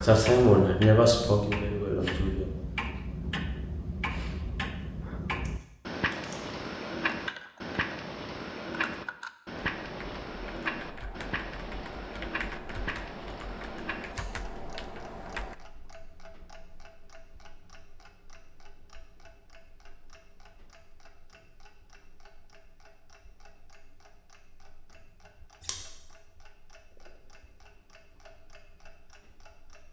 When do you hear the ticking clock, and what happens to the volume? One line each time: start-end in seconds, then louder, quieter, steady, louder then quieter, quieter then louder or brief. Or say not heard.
0.0-29.8 quieter.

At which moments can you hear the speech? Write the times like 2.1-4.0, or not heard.
0.0-2.5.